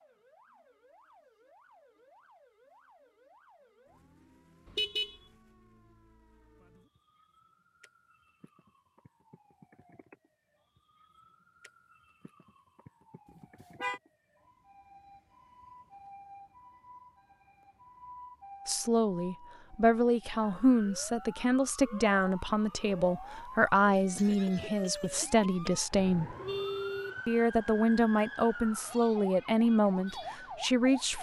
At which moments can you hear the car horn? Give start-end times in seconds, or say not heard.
4.7-5.2, 13.3-14.0, 25.9-27.2.